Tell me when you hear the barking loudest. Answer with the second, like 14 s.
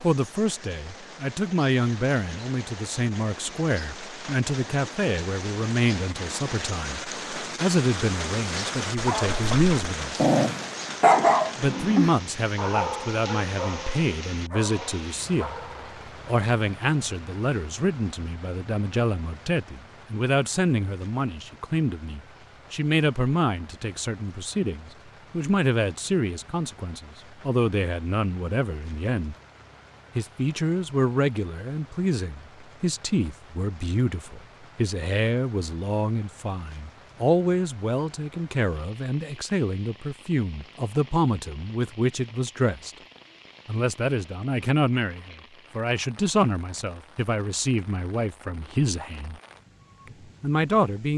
11 s.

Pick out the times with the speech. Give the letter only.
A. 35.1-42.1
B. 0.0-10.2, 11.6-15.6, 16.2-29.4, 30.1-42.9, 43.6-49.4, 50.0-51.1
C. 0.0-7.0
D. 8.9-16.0
B.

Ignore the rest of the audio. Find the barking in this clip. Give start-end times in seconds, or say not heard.
8.9-16.0.